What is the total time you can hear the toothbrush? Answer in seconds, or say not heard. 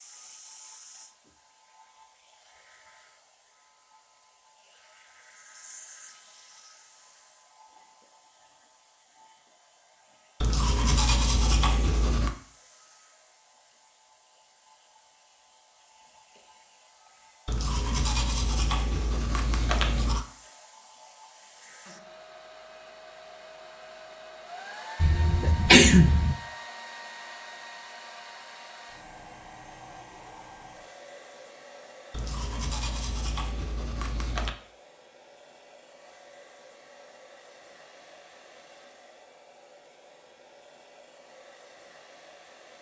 7 s.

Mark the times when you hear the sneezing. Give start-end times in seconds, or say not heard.
25.0-26.4.